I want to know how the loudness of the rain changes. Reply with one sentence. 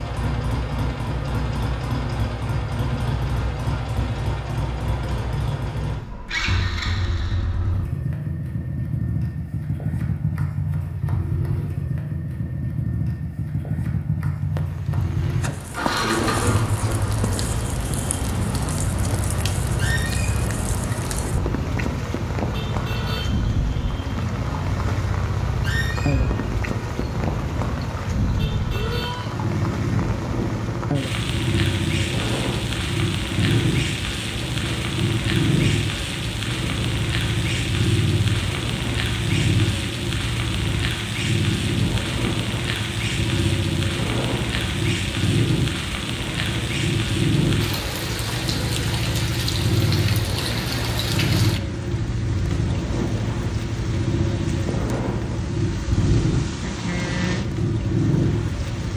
The loudness of the rain stays about the same.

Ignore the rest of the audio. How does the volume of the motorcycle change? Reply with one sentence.
The loudness of the motorcycle stays about the same.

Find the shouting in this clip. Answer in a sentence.
You can hear the shouting from 28.7 to 29.4 s.